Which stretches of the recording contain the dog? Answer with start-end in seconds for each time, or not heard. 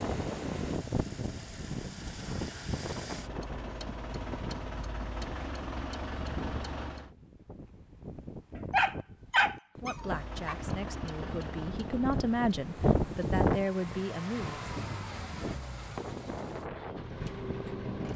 8.6-10.6.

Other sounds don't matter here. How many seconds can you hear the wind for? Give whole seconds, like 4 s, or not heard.
18 s.